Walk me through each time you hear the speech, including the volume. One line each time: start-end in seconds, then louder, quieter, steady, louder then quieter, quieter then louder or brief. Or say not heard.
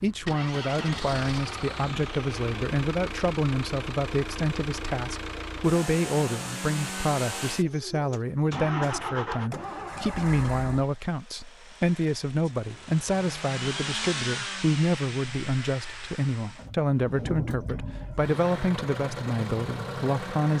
0.0-20.5 steady.